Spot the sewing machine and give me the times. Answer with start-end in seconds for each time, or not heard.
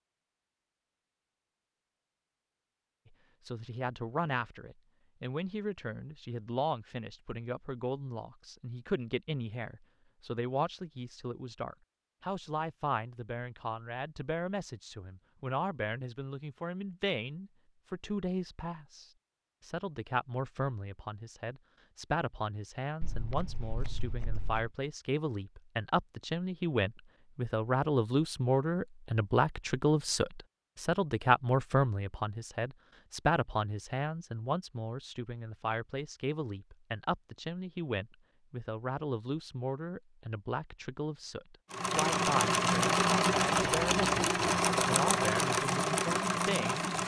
41.7-47.0.